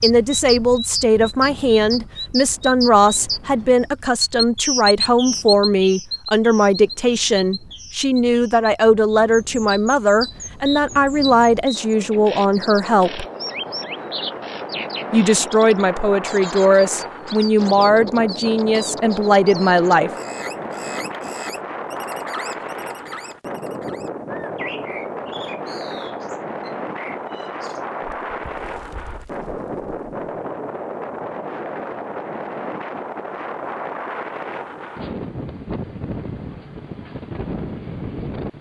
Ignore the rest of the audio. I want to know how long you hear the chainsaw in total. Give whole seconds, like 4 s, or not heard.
not heard.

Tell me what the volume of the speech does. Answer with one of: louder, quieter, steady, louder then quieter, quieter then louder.
steady.